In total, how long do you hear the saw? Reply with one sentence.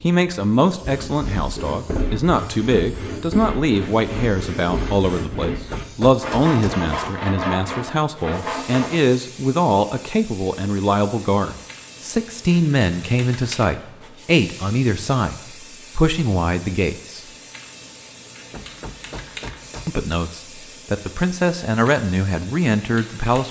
The saw can be heard for 8 seconds in total.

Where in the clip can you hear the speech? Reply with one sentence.
The speech can be heard from 0.0 to 17.2 s and from 19.9 to 23.4 s.